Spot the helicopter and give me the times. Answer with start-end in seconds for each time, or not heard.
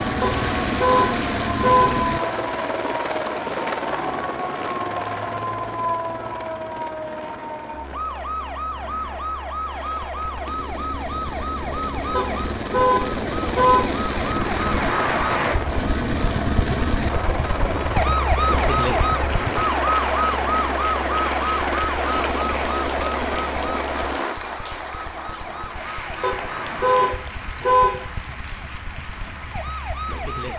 0.0-24.4.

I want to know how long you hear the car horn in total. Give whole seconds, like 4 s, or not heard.
5 s.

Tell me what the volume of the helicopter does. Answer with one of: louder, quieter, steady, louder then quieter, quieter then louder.
quieter then louder.